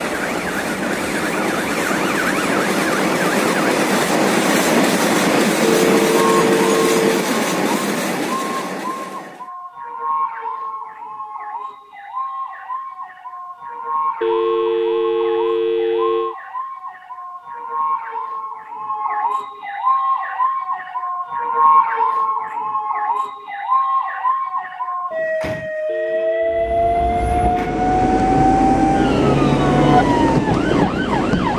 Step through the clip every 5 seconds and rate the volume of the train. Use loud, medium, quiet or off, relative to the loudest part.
loud, loud, off, off, off, loud, loud.